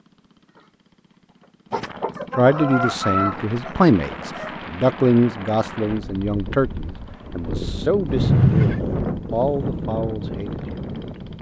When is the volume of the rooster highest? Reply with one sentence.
The loudest moment of the rooster is at 3 seconds.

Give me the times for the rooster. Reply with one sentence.
You can hear the rooster from 1.7 to 4.6 s.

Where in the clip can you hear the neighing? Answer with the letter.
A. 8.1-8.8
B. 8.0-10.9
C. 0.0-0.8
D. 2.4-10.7
A.